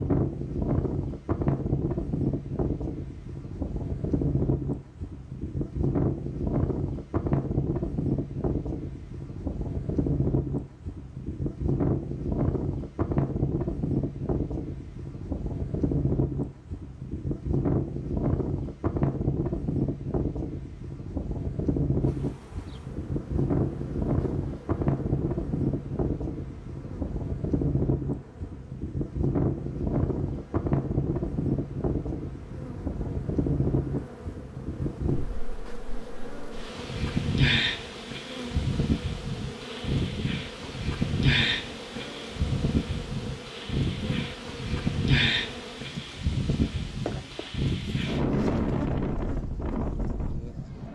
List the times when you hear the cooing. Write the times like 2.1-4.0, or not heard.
not heard.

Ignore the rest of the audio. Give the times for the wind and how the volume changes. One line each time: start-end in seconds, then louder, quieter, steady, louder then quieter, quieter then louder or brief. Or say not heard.
0.0-50.8 steady.